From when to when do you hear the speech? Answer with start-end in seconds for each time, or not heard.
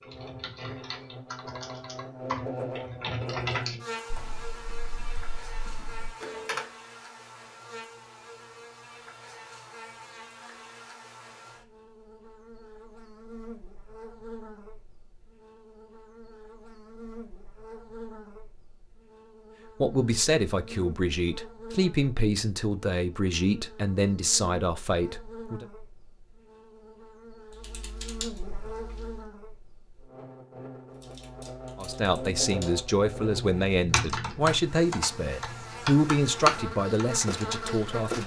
19.8-25.6, 31.8-38.2.